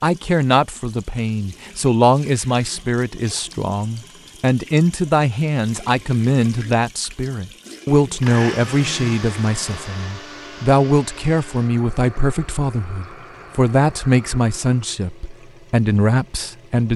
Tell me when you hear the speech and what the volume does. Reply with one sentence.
The speech can be heard from 0.0 to 16.9 s, at a steady volume.